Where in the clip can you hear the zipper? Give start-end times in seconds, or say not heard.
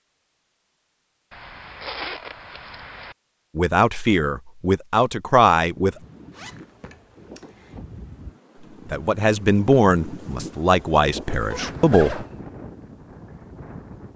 1.3-3.1, 6.3-7.8, 11.5-12.3.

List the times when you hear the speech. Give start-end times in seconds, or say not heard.
3.5-6.0, 8.9-12.2.